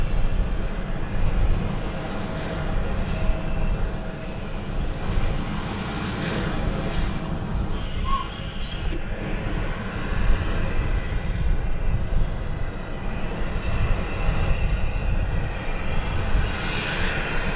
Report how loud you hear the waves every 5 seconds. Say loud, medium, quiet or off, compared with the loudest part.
medium, loud, medium, off.